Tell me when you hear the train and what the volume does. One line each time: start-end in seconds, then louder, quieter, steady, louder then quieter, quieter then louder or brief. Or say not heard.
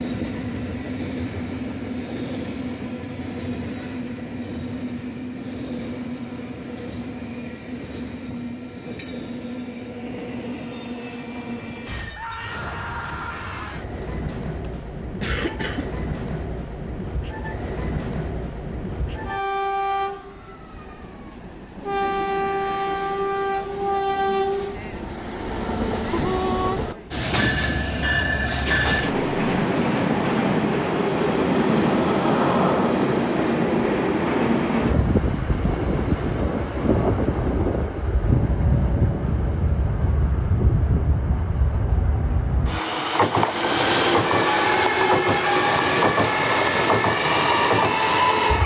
0.0-48.6 louder.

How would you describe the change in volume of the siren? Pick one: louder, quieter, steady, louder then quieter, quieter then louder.
steady.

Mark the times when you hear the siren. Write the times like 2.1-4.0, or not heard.
44.2-48.6.